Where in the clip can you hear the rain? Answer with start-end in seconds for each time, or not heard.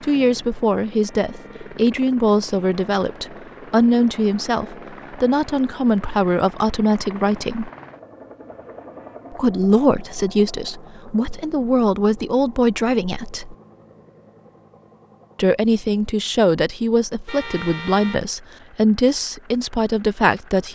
not heard.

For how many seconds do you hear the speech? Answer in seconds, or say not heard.
17 s.